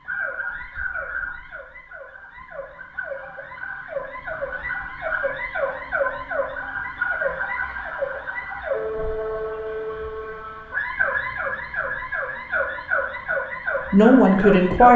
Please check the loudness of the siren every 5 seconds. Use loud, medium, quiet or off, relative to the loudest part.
medium, loud, loud.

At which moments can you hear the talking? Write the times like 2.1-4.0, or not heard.
13.8-14.9.